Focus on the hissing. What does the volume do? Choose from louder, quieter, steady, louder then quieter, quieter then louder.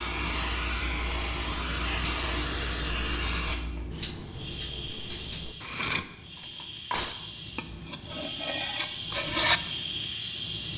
quieter then louder.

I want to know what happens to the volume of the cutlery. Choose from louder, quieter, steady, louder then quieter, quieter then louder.
louder.